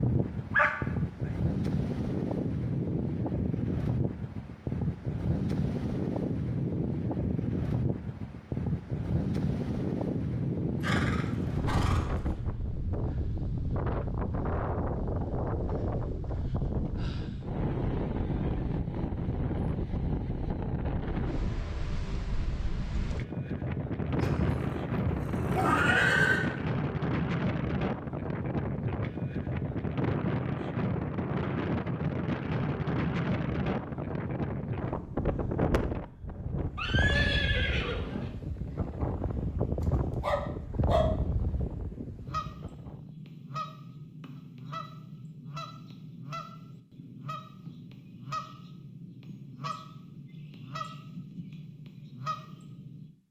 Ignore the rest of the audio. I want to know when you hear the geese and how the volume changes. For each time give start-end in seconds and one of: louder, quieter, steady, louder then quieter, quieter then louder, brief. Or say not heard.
42.2-53.1 steady.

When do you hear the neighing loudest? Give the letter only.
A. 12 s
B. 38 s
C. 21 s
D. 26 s
D.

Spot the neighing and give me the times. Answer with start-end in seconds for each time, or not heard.
10.8-12.2, 24.1-26.4, 36.8-38.3.